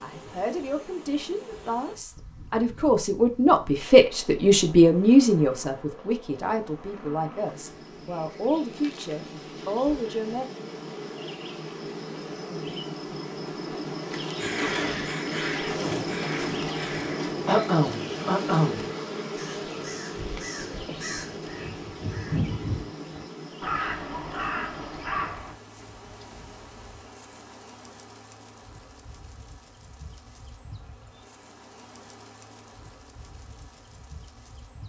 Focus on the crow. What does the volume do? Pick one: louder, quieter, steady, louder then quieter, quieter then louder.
quieter then louder.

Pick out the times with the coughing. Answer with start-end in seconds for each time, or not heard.
17.4-18.9.